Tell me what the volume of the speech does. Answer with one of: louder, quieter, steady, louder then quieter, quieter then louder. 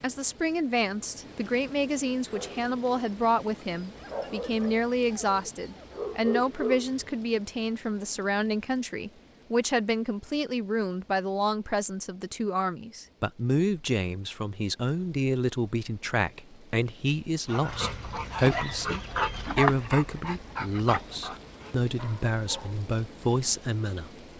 steady.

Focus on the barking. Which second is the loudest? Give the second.
20 s.